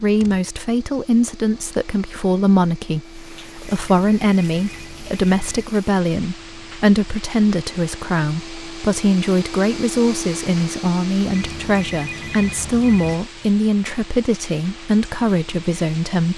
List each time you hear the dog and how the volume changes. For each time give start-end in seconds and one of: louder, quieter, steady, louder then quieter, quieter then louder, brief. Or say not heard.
not heard.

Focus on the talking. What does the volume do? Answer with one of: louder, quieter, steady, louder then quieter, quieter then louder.
steady.